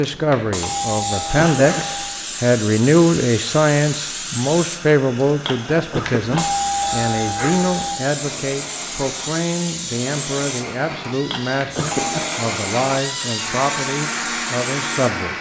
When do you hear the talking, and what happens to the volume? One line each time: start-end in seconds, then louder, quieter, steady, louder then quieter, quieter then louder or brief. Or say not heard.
0.0-15.3 quieter.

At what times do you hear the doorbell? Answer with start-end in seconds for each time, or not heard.
0.3-2.1, 6.0-8.0, 11.6-12.2.